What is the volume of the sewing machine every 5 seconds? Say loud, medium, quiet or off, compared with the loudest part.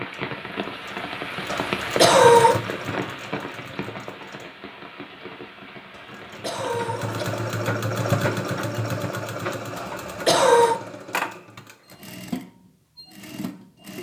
medium, loud, medium.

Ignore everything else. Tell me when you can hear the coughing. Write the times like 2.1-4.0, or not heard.
1.4-2.6, 5.9-7.3, 9.8-10.8.